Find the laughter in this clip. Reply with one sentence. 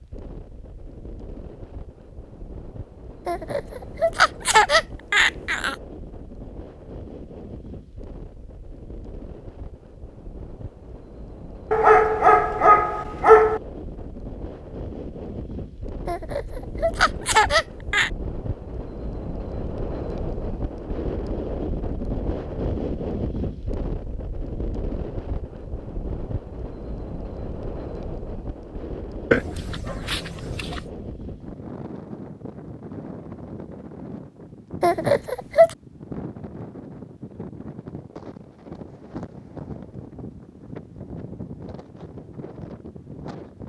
The laughter can be heard from 3.2 to 5.8 s, from 16.1 to 18.1 s and from 34.8 to 35.8 s.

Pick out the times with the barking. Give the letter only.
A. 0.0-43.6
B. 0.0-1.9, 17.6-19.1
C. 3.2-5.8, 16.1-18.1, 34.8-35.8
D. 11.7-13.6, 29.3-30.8
D.